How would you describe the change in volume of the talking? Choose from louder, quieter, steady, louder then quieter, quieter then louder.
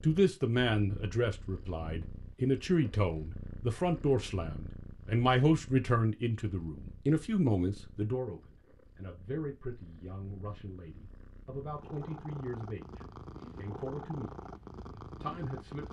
quieter.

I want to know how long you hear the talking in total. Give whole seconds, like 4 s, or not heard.
16 s.